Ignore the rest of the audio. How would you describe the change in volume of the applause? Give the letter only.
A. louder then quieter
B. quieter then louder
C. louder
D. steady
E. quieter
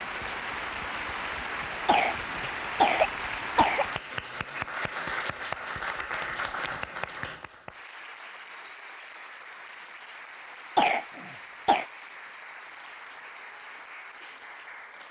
E.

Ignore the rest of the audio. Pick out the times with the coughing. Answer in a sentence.
The coughing can be heard from 1.9 to 3.9 s and from 10.8 to 11.8 s.